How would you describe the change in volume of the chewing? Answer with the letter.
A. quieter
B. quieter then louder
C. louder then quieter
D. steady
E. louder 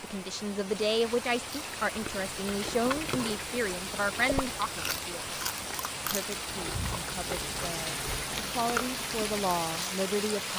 D.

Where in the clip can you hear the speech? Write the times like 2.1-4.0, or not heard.
0.0-5.3, 6.0-10.5.